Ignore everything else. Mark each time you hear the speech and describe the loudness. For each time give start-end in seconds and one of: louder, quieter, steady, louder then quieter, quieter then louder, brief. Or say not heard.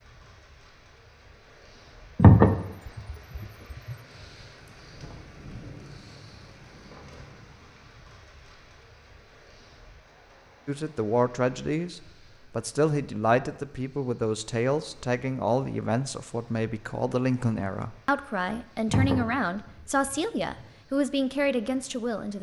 10.7-22.3 steady.